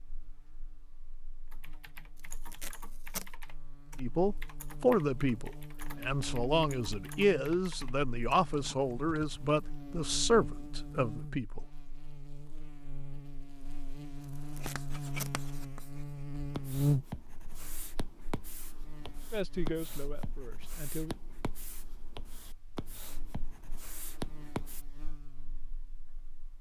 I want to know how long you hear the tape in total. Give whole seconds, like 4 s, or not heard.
2 s.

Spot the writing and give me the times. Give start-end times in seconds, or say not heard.
14.5-24.9.